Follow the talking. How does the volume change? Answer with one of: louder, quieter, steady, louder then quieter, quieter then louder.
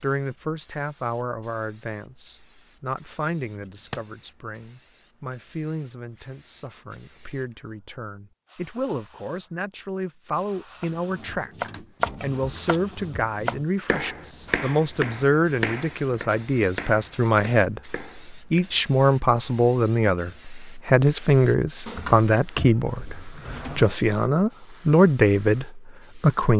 louder.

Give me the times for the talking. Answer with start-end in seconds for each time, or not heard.
0.0-26.5.